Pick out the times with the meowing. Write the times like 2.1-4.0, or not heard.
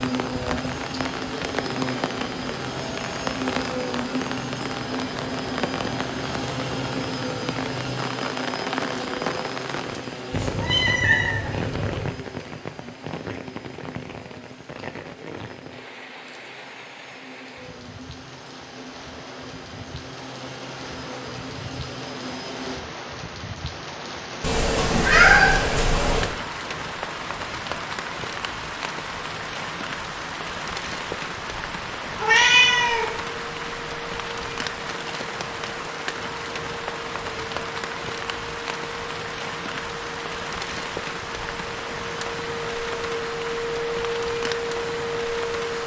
10.3-12.1, 24.4-26.3, 32.1-33.0.